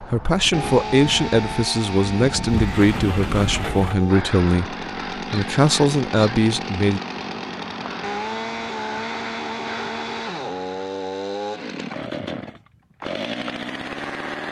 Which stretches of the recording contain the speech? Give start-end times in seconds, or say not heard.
0.0-7.0.